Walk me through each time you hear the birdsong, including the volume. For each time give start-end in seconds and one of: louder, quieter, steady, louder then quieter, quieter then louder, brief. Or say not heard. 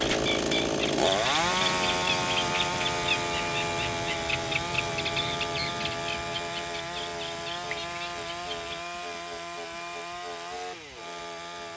0.0-8.8 quieter.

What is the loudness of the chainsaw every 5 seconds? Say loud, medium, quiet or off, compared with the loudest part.
loud, medium, medium.